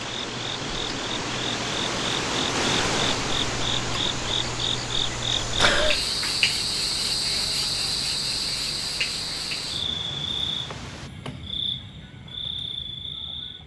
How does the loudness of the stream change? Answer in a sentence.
The loudness of the stream goes down.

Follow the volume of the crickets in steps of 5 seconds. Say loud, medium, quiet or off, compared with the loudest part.
medium, loud, medium.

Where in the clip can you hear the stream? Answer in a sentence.
The stream can be heard from 0.0 to 11.1 s.